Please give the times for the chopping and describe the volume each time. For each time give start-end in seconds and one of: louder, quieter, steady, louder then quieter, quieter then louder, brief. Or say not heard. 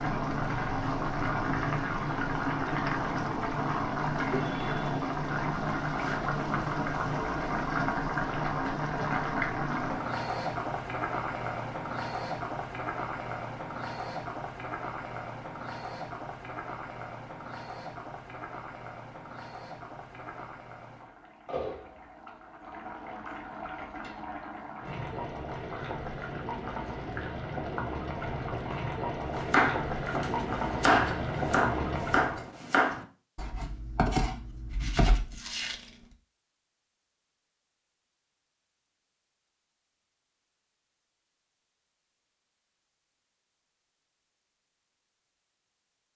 29.2-35.9 louder then quieter.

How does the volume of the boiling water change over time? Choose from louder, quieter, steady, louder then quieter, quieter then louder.
quieter then louder.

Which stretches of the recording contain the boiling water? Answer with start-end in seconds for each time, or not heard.
0.0-32.5.